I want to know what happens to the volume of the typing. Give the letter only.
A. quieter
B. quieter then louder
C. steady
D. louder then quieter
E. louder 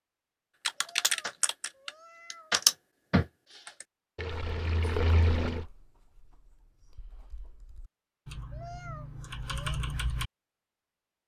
B.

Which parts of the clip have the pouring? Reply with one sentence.
The pouring can be heard from 4.2 to 5.7 s.